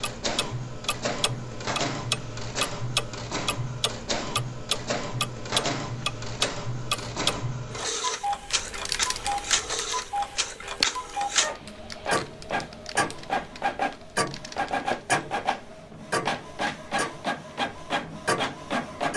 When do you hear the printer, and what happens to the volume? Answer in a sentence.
You can hear the printer from 0.0 to 19.1 s, at a steady volume.